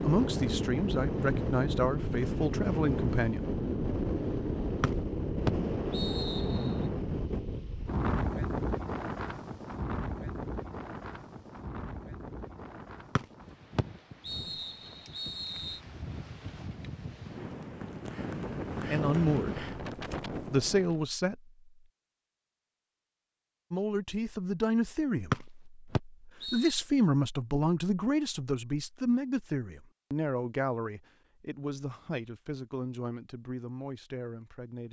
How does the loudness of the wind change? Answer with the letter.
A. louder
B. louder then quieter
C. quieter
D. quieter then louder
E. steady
D.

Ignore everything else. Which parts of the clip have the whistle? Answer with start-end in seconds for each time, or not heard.
4.8-6.7, 13.2-15.8, 25.3-26.8.